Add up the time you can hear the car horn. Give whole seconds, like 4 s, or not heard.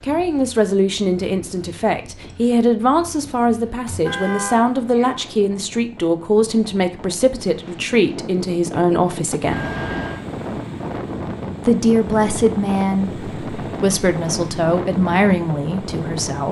2 s.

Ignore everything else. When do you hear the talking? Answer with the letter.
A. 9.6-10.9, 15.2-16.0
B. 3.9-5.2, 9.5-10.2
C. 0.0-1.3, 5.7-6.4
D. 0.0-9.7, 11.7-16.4
D.